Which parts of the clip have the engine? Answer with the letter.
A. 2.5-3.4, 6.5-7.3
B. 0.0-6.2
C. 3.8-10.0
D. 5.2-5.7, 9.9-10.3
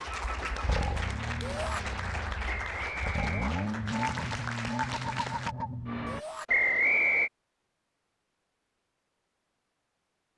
B.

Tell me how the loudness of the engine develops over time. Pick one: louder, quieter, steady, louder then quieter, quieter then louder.
quieter then louder.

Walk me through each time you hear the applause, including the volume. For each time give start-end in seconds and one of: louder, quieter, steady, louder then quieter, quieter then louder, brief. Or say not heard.
0.0-5.5 steady.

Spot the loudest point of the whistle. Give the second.
7 s.